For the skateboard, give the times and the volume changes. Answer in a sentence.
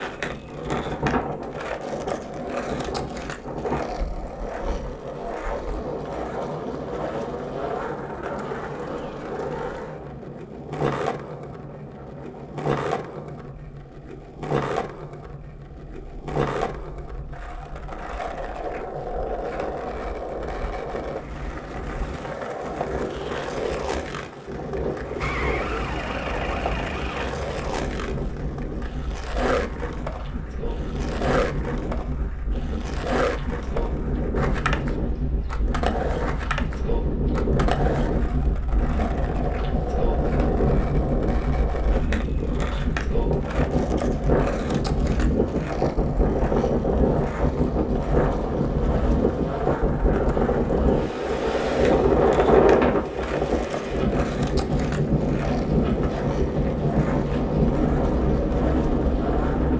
You can hear the skateboard from 0.0 to 59.7 s, at a steady volume.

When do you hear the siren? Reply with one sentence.
The siren can be heard from 25.1 to 27.2 s.